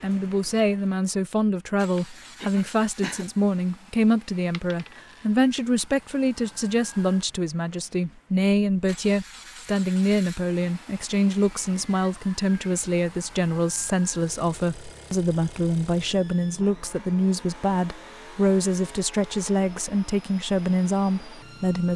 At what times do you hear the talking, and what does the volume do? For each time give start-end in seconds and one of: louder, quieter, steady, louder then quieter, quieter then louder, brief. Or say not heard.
0.0-21.9 steady.